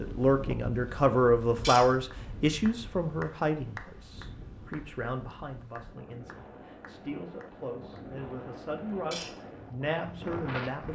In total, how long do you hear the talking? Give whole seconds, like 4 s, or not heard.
11 s.